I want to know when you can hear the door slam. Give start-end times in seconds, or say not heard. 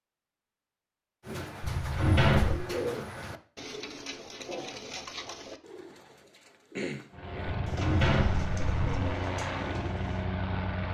1.6-2.6, 7.5-9.1.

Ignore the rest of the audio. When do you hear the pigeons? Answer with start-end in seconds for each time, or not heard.
1.2-10.3.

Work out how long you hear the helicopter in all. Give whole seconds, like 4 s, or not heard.
4 s.